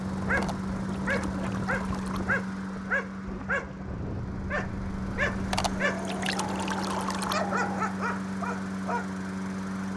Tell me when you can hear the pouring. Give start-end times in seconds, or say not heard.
0.3-2.2, 5.5-7.3.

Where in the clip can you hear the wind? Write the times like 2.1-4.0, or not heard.
0.0-7.9.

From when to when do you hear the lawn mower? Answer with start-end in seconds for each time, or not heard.
0.0-9.9.